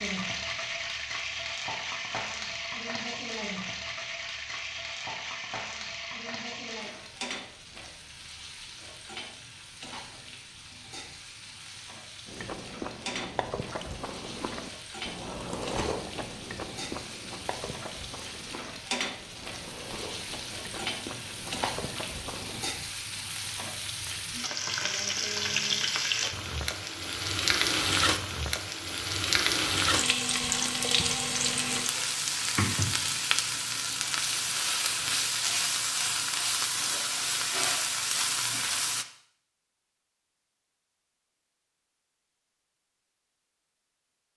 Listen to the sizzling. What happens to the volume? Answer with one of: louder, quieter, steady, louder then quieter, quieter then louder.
quieter then louder.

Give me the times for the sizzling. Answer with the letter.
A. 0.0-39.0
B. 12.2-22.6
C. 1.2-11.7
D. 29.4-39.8
A.